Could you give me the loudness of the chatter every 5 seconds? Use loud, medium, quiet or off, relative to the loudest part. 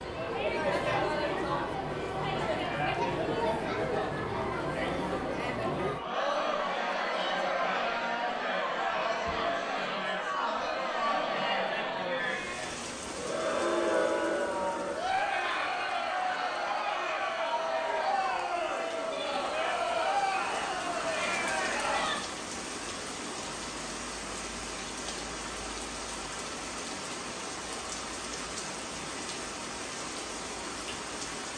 loud, loud, loud, loud, loud, off, off.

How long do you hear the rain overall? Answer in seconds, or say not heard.
19 s.